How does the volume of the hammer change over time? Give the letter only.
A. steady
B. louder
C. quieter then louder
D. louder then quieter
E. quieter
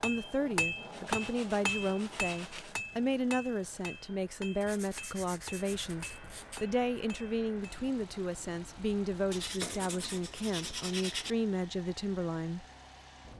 E.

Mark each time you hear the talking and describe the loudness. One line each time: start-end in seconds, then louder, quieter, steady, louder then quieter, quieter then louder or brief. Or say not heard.
0.0-12.7 steady.